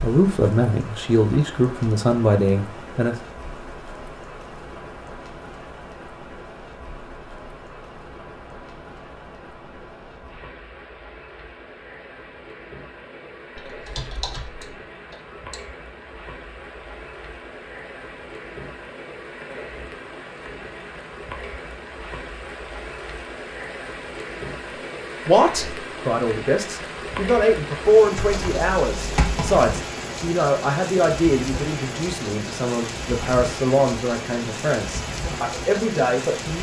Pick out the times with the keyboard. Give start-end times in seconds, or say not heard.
13.6-15.6, 28.1-29.7.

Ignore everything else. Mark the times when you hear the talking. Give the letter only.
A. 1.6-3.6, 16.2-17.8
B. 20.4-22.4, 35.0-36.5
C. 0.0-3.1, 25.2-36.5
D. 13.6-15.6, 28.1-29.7
C.